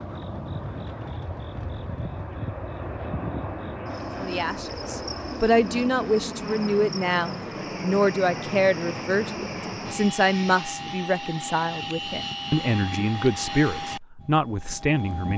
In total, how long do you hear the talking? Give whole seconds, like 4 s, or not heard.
11 s.